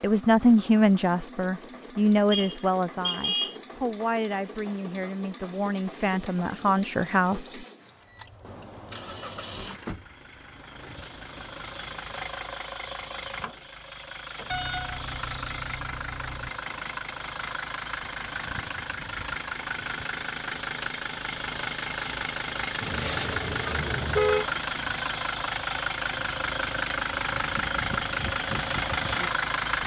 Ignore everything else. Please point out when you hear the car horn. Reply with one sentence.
You can hear the car horn from 2.3 to 3.6 s, from 14.5 to 16.5 s and from 22.8 to 24.4 s.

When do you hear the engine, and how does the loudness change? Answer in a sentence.
You can hear the engine from 0.0 to 29.8 s, getting louder.